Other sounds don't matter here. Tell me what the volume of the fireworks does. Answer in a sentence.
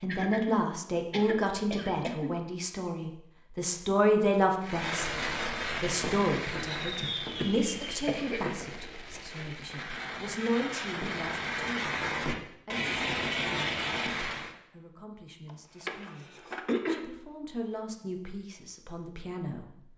The loudness of the fireworks goes down, then up.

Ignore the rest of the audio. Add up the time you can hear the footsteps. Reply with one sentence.
The footsteps can't be heard in this clip.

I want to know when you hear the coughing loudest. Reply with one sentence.
The loudest moment of the coughing is at 17 seconds.